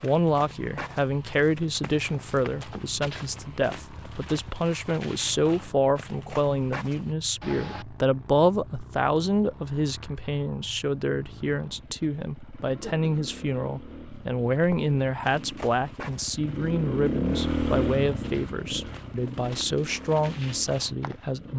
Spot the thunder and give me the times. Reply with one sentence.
You can't hear the thunder here.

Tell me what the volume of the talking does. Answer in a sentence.
The volume of the talking stays about the same.